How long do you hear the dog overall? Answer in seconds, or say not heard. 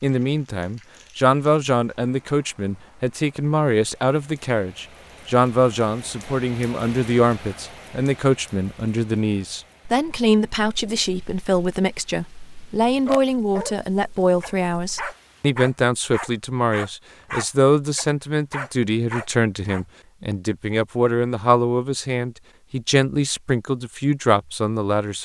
7 s.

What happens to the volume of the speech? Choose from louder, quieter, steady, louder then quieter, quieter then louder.
steady.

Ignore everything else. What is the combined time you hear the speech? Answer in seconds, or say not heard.
25 s.